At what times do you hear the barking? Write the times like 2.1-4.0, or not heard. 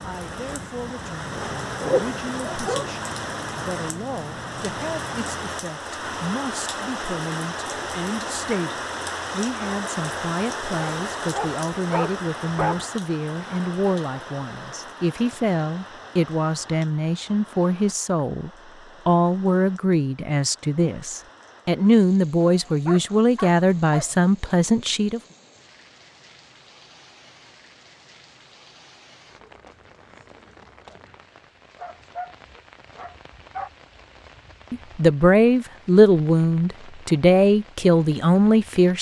1.4-2.9, 10.8-12.8, 22.4-24.1, 31.8-33.7.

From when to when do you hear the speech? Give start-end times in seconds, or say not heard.
0.0-25.2, 34.7-38.9.